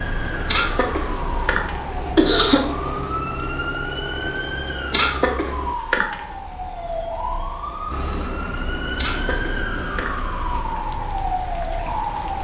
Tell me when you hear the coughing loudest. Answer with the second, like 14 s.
2 s.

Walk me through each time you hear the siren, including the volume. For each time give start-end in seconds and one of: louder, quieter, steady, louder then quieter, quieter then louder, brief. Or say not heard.
0.0-12.3 steady.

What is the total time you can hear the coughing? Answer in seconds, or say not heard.
5 s.